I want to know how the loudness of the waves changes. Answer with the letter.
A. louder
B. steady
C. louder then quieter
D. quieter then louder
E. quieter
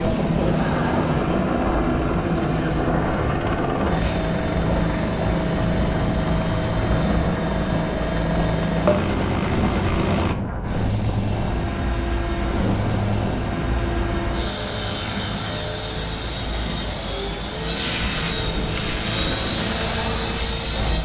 B.